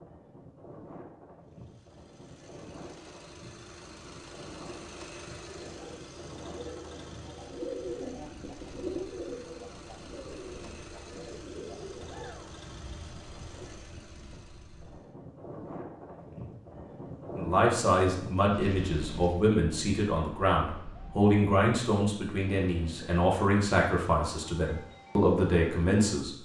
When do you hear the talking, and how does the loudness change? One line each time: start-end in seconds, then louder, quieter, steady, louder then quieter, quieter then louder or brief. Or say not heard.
17.4-26.4 steady.